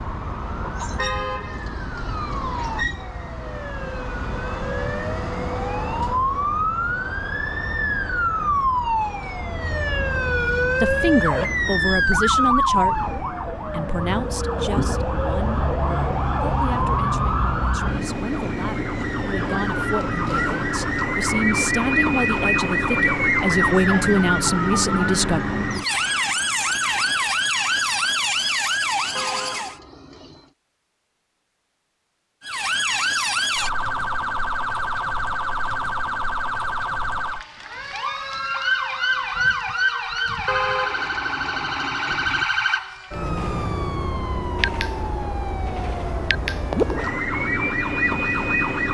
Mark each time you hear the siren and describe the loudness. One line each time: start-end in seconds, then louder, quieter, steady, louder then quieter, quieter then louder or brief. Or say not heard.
0.0-29.8 louder
32.4-48.8 steady.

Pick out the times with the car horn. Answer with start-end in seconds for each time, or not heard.
0.9-3.0, 29.1-30.5, 40.5-42.5.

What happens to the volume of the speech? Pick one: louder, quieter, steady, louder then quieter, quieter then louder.
quieter then louder.